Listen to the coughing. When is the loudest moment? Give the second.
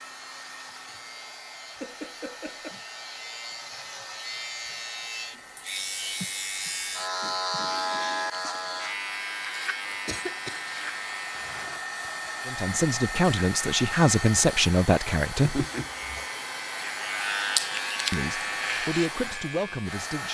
16 s.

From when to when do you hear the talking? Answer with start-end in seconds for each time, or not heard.
12.4-15.7, 18.1-20.2.